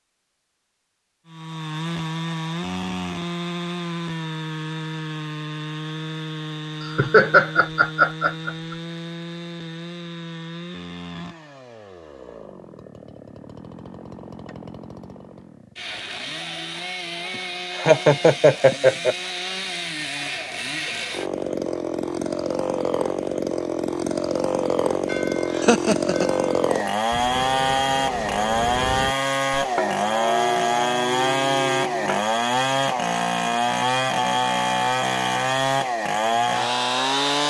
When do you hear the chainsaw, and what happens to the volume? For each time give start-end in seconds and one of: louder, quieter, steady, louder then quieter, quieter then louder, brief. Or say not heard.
1.2-37.4 quieter then louder.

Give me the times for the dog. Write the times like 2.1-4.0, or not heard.
not heard.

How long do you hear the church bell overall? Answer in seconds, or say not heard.
7 s.